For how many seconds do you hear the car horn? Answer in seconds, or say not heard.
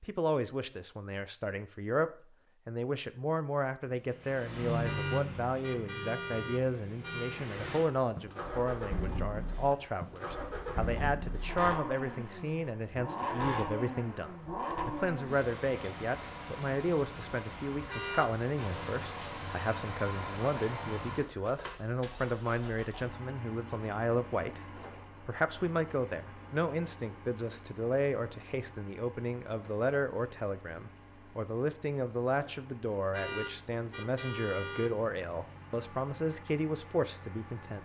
5 s.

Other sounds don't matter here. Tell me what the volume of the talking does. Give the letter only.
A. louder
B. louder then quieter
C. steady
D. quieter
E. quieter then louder
C.